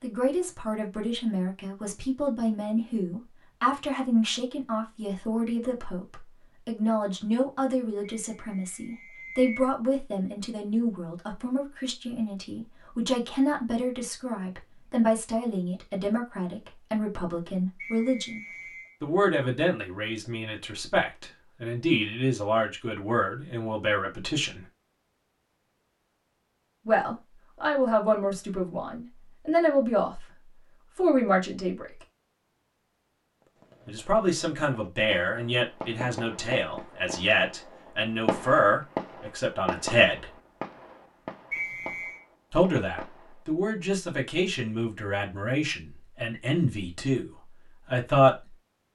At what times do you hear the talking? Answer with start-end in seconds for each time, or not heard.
0.0-24.6, 26.9-30.2, 30.9-31.9, 33.9-40.2, 42.5-48.5.